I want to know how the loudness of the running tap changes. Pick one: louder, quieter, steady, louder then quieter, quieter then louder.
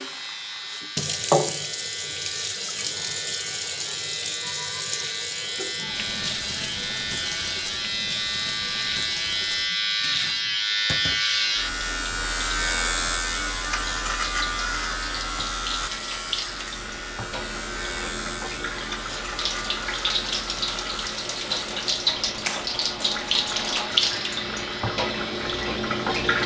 quieter then louder.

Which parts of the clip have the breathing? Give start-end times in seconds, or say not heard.
not heard.